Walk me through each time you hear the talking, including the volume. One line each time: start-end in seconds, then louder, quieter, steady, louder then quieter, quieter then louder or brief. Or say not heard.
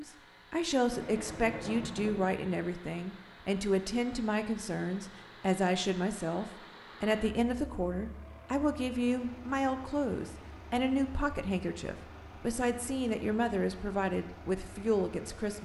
0.0-15.5 steady.